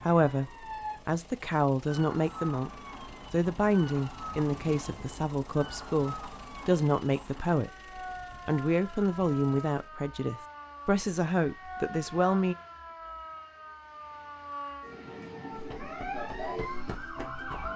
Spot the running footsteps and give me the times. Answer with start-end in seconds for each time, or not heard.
15.5-17.7.